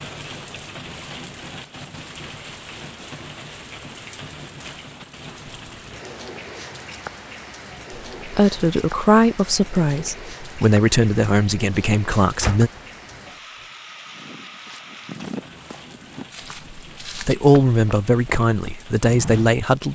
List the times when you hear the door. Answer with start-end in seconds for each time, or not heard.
12.4-13.2.